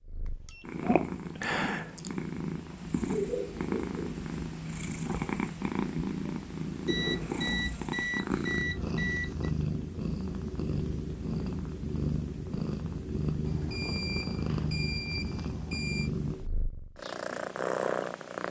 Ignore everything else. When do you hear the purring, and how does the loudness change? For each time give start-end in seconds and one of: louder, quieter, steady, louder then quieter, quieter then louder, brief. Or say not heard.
0.0-18.4 steady.